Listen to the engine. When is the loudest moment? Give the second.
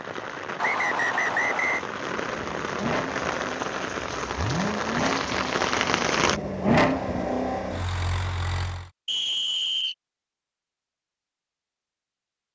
7 s.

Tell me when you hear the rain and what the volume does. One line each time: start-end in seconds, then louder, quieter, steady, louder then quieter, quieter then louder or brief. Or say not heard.
0.0-6.4 louder.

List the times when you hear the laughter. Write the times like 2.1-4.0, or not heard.
not heard.